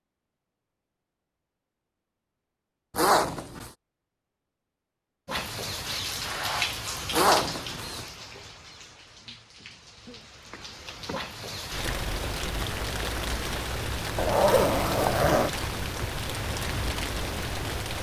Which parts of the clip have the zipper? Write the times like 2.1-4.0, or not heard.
3.0-3.7, 7.1-8.1, 14.2-15.5.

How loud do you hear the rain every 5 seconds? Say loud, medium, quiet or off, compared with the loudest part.
off, loud, loud, loud.